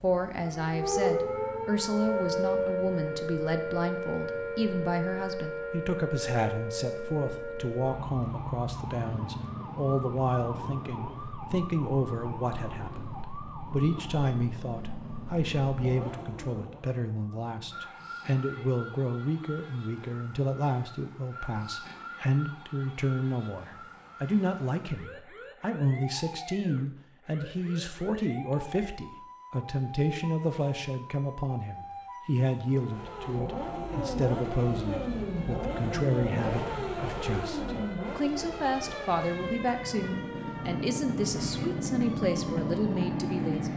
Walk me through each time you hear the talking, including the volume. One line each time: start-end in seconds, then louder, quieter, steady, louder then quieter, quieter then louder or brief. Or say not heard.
0.0-43.7 steady.